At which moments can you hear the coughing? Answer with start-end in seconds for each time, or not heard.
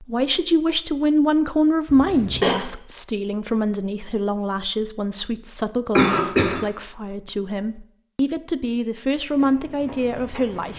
1.9-2.5, 6.0-6.6.